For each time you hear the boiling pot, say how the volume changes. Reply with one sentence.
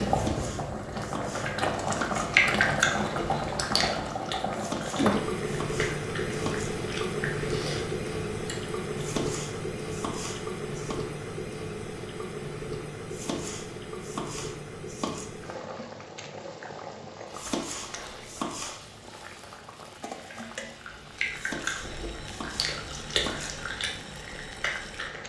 The boiling pot can be heard from 0.0 to 25.2 s, getting quieter.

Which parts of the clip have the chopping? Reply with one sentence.
You can hear the chopping from 0.1 to 2.3 s, from 4.5 to 6.7 s, from 8.9 to 11.0 s, from 13.1 to 15.3 s, from 17.4 to 18.8 s and from 21.3 to 23.5 s.